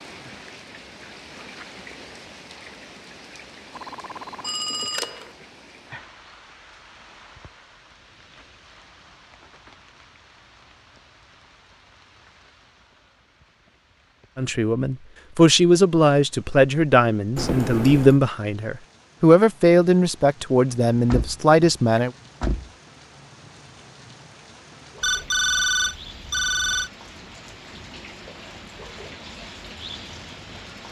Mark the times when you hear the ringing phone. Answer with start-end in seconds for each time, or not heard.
3.8-5.3, 17.4-18.2, 25.0-26.9.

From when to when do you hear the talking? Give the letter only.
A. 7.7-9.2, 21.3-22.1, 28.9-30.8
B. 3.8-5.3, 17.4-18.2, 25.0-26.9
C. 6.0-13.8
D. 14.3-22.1
D.